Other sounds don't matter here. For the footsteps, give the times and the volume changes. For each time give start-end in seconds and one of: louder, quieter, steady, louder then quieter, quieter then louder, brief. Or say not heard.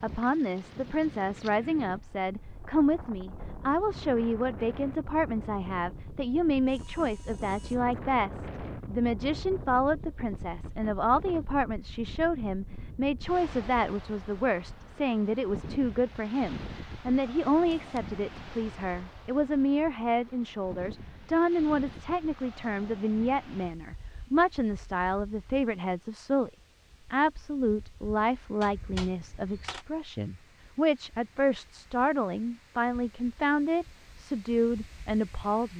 not heard.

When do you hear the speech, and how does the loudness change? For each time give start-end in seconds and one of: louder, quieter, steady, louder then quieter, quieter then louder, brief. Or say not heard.
0.0-26.5 steady
27.1-35.7 quieter then louder.